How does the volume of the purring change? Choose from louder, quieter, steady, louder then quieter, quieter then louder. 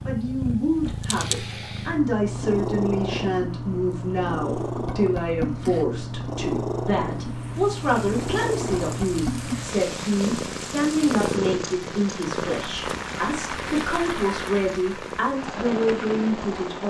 quieter.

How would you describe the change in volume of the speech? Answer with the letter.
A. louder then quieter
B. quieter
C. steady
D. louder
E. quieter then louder
C.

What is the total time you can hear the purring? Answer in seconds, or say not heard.
17 s.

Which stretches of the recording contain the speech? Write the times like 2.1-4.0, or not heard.
0.0-16.8.